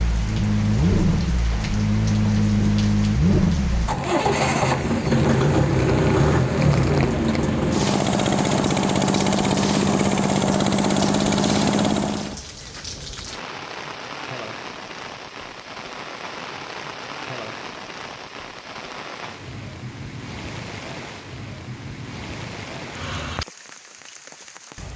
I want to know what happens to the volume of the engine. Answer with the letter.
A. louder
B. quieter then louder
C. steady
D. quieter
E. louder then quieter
C.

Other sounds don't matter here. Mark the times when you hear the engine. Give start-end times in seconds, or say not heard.
0.0-12.4.